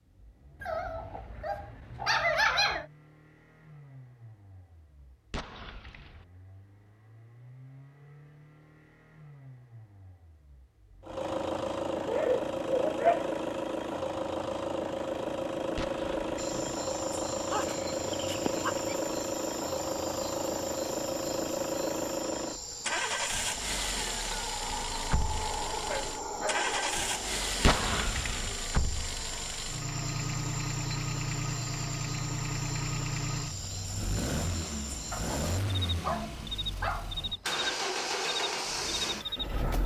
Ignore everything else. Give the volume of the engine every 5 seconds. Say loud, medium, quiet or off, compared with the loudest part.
quiet, quiet, loud, loud, loud, loud, loud, loud.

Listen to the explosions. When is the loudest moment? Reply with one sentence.
The loudest moment of the explosions is at 28 seconds.